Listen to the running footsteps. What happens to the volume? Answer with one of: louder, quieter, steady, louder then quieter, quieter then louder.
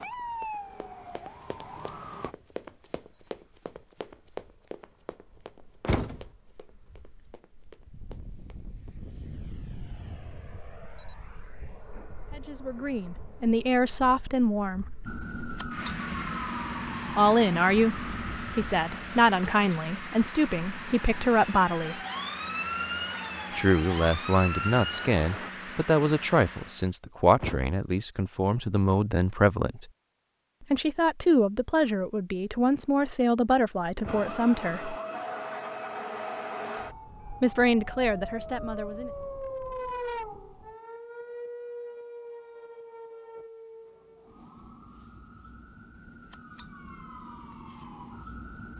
louder then quieter.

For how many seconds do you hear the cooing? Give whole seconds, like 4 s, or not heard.
not heard.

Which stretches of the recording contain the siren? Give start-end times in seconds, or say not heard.
0.0-2.4, 15.1-25.5, 34.0-48.7.